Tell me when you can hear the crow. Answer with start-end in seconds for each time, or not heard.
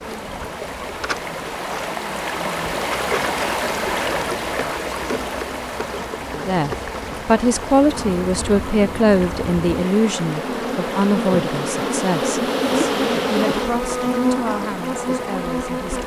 not heard.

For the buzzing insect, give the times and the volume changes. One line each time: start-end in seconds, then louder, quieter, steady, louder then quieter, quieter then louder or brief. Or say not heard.
0.0-16.0 louder.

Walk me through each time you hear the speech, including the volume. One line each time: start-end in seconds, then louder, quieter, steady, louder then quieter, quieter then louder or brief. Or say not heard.
6.3-16.0 quieter.